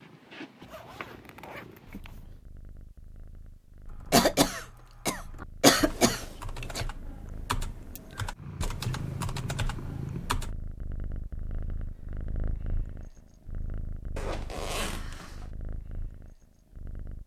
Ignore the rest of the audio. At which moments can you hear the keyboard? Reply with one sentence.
You can hear the keyboard from 3.9 to 10.6 s.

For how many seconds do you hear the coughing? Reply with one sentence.
You can hear the coughing for 3 seconds altogether.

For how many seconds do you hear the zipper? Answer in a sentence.
You can hear the zipper for 4 seconds altogether.